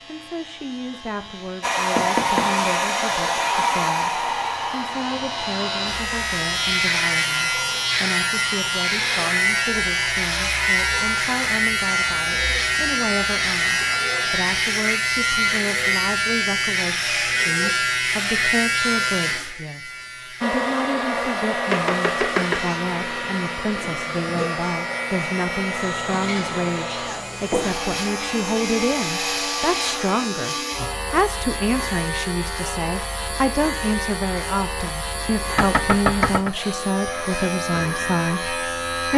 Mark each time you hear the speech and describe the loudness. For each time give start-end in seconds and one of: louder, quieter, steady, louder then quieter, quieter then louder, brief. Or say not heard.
0.1-39.1 louder.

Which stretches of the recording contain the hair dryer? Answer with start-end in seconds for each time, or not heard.
1.6-14.7, 20.4-30.2.